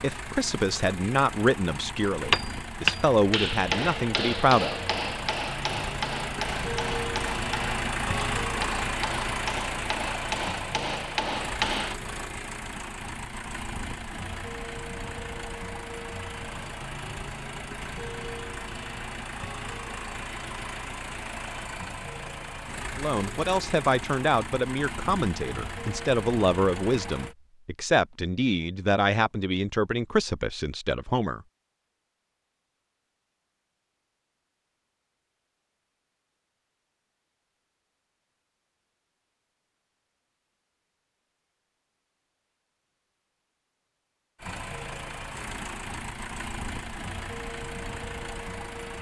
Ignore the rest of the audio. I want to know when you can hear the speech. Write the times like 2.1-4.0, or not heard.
0.0-4.8, 22.9-31.4.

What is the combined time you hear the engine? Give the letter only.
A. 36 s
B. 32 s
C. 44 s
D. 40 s
B.